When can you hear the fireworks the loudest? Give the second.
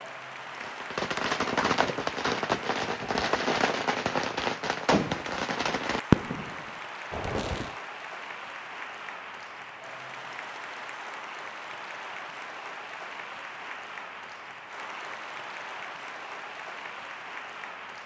6 s.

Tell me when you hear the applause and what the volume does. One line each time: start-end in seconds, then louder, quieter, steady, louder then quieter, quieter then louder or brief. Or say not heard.
0.0-18.0 steady.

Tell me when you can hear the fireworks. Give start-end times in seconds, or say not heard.
0.6-7.8.